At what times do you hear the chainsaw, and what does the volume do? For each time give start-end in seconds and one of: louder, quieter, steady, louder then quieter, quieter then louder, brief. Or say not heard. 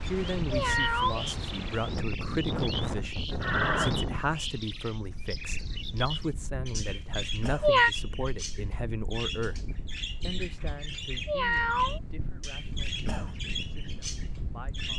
not heard.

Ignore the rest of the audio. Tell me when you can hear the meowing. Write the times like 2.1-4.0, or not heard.
0.1-1.8, 7.2-7.9, 10.8-12.4.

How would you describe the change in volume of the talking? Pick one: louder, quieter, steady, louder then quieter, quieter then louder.
quieter.